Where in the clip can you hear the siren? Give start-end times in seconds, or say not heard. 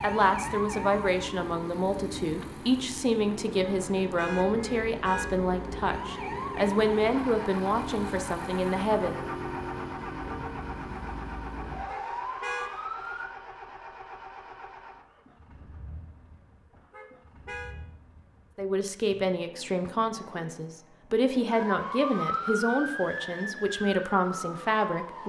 0.0-13.3, 21.4-25.2.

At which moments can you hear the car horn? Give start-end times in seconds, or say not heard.
3.6-5.5, 11.8-12.7, 16.9-17.8.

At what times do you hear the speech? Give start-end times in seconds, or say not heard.
0.0-9.2, 18.6-25.2.